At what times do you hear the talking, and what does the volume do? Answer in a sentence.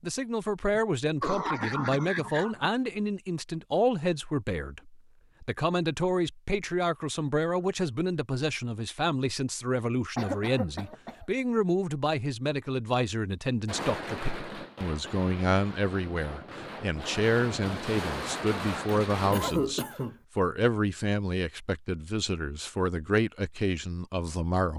You can hear the talking from 0.0 to 24.7 s, at a steady volume.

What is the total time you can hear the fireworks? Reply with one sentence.
You can hear the fireworks for 6 seconds altogether.